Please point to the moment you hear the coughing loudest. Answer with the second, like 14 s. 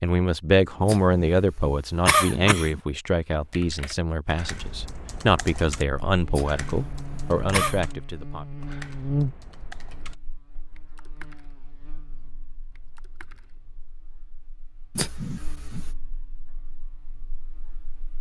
2 s.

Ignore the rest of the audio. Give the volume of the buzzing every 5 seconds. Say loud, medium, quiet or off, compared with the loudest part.
off, loud, quiet, quiet.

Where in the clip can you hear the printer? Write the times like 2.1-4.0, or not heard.
not heard.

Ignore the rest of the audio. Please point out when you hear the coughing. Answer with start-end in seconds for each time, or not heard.
0.8-2.8, 6.3-7.8, 14.9-15.9.